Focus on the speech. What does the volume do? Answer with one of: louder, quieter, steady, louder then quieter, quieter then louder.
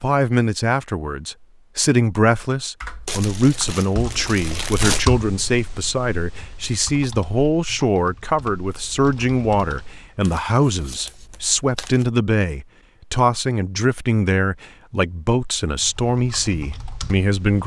steady.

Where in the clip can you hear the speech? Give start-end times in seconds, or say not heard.
0.0-17.6.